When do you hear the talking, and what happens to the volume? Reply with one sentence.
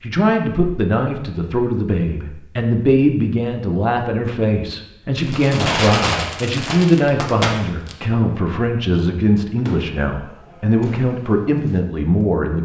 You can hear the talking from 0.0 to 12.6 s, at a steady volume.